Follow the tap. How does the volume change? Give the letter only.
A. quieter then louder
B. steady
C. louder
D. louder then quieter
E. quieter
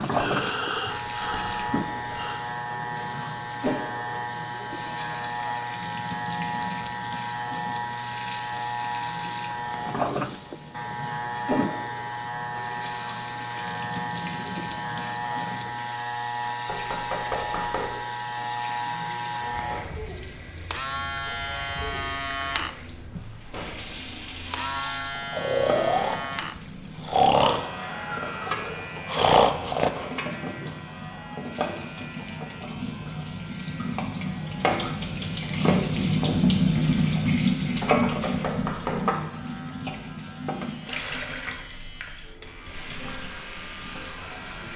C.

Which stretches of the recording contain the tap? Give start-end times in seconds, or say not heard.
0.0-44.7.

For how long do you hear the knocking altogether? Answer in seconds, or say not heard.
3 s.